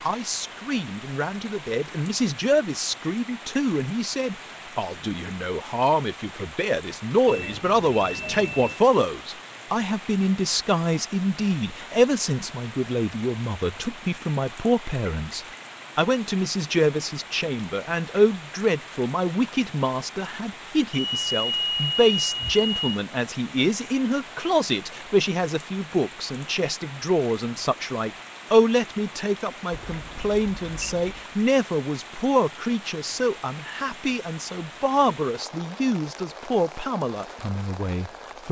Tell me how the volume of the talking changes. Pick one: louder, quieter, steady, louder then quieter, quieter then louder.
steady.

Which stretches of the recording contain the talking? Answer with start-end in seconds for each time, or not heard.
0.0-38.4.